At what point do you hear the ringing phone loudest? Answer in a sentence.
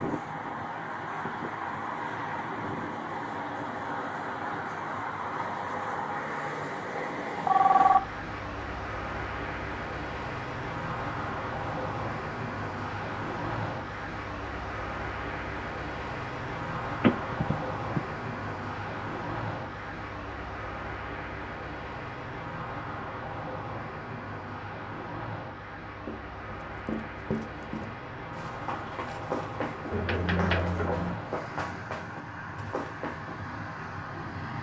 The volume of the ringing phone peaks at 8 seconds.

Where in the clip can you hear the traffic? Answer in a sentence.
You can hear the traffic from 0.0 to 34.5 s.